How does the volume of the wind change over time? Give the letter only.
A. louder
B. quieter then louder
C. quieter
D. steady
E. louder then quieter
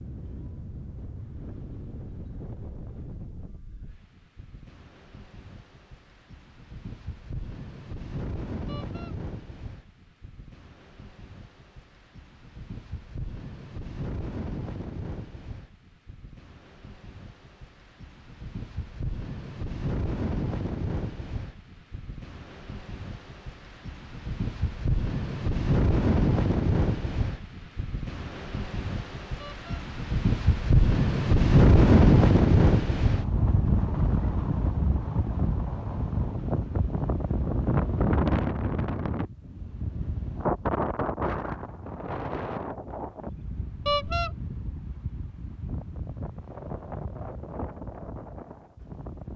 E.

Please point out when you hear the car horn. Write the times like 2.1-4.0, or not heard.
8.7-9.2, 29.4-29.9, 43.9-44.3.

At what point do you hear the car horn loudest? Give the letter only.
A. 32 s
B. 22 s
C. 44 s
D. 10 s
C.